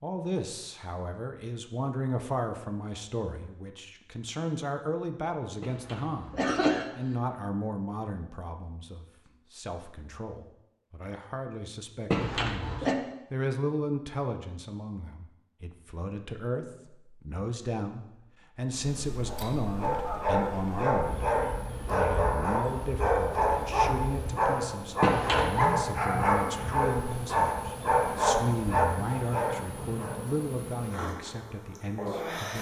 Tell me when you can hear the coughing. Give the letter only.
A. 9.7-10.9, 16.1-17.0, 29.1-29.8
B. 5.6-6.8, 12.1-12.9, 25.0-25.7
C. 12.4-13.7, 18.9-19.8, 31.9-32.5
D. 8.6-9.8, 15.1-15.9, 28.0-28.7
B.